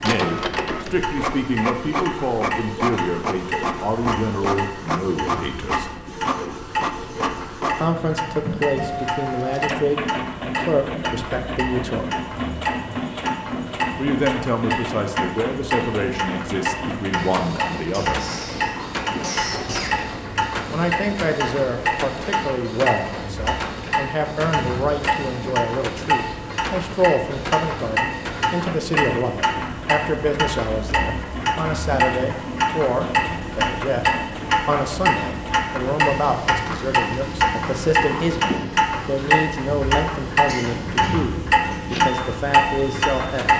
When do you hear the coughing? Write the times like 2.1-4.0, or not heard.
17.9-19.9, 40.5-41.8.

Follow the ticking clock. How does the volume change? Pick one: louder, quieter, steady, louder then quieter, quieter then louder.
louder.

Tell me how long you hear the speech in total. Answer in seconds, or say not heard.
37 s.